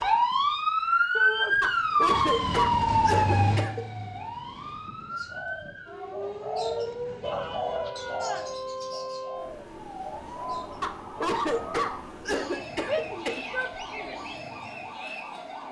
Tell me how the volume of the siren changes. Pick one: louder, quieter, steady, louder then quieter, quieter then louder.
quieter.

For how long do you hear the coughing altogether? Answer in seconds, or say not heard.
5 s.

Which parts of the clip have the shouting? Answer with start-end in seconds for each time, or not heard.
1.1-1.6, 7.2-8.6, 12.8-14.2.